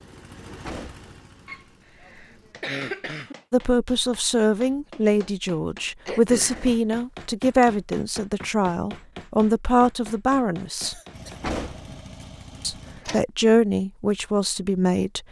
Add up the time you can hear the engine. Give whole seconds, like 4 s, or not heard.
5 s.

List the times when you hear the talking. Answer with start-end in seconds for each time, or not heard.
3.5-10.9, 12.6-15.2.